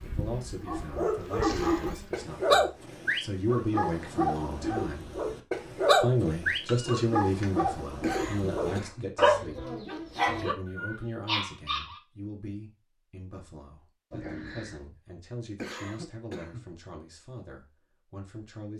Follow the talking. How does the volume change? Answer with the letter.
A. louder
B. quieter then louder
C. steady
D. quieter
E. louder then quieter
E.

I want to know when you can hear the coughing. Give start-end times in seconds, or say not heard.
1.4-2.0, 8.0-9.1, 15.6-16.6.